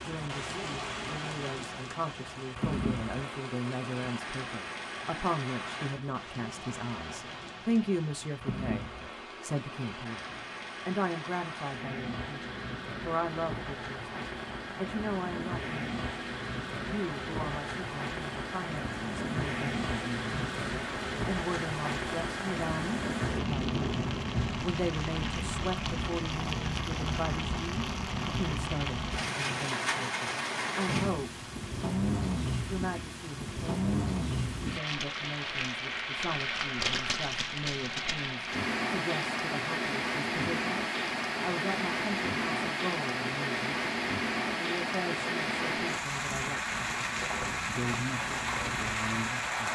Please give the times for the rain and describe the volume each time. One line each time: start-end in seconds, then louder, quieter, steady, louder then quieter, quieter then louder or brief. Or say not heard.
0.0-49.7 louder.